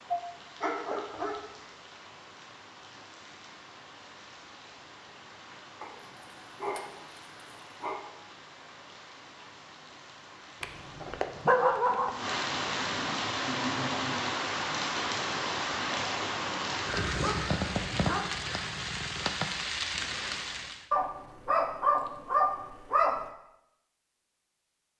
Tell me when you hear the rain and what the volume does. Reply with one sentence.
You can hear the rain from 0.0 to 20.9 s, getting louder.